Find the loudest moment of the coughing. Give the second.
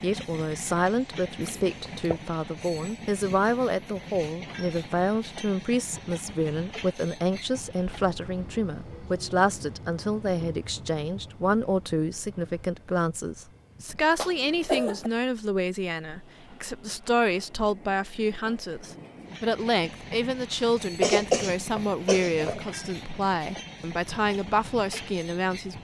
21 s.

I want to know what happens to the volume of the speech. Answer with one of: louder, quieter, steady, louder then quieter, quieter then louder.
steady.